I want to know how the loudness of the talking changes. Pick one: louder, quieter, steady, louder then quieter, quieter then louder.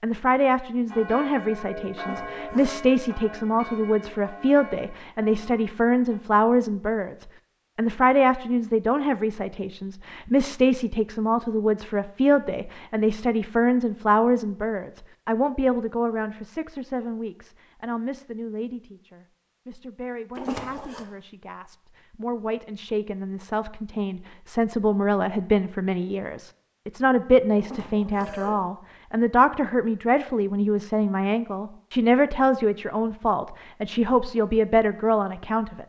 quieter then louder.